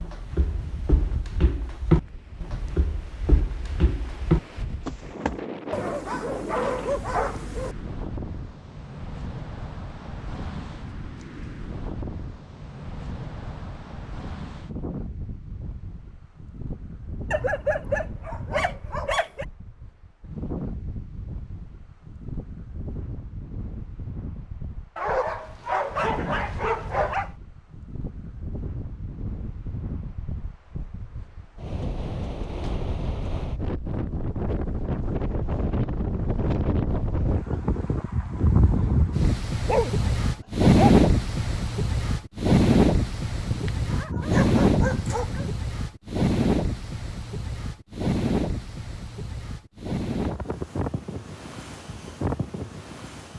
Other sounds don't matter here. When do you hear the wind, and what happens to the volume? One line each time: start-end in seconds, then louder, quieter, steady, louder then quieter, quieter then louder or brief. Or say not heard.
0.0-53.3 louder.